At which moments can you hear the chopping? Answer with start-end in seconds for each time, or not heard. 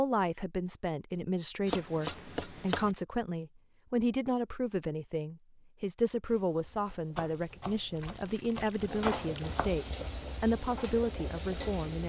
1.6-3.0, 7.2-9.8.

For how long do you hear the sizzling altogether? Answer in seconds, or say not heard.
6 s.